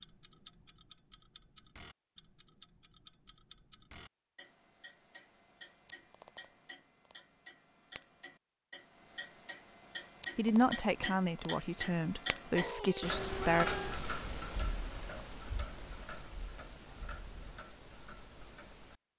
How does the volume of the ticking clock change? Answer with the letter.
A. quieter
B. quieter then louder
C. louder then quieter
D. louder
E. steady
C.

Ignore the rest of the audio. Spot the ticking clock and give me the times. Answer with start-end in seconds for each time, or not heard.
0.0-19.0.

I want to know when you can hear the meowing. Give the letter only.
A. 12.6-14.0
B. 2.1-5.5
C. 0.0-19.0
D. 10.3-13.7
A.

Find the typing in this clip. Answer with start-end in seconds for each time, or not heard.
not heard.